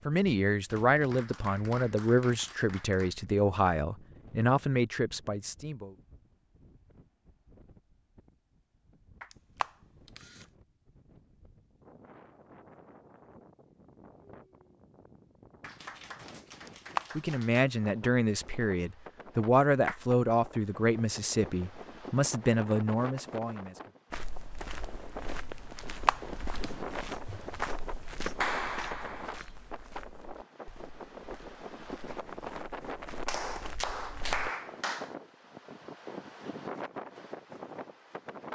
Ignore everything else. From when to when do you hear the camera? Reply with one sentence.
The camera can be heard from 9.3 to 10.4 s, from 16.6 to 17.1 s and from 25.8 to 26.6 s.